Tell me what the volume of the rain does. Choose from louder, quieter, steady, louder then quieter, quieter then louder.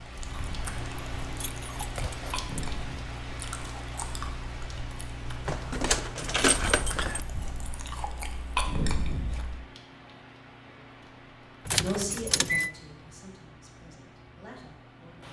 quieter.